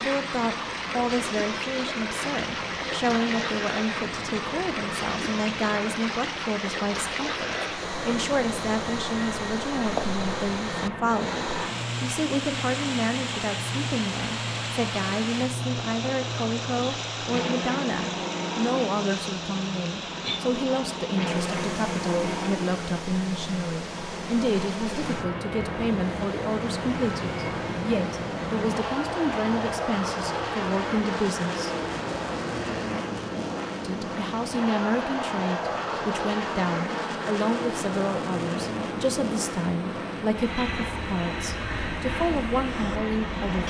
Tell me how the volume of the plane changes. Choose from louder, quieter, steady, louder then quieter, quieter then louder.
louder.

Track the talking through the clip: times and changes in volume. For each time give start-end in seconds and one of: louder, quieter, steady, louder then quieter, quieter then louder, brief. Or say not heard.
0.0-31.7 steady
33.8-43.6 steady.